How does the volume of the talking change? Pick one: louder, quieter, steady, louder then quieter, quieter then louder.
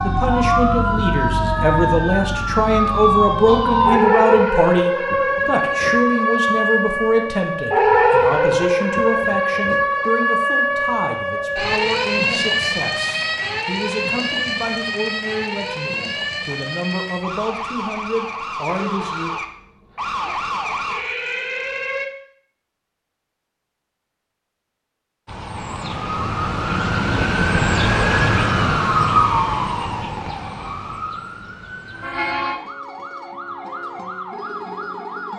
quieter.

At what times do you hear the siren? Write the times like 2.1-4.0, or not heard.
0.0-22.1, 25.2-35.3.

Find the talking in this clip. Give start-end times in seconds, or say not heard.
0.0-19.4.